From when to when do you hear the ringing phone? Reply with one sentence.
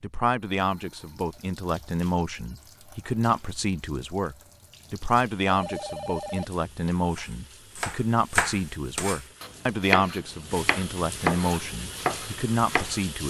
You can hear the ringing phone from 5.5 to 7.0 s.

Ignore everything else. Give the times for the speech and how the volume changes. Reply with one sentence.
You can hear the speech from 0.0 to 13.2 s, at a steady volume.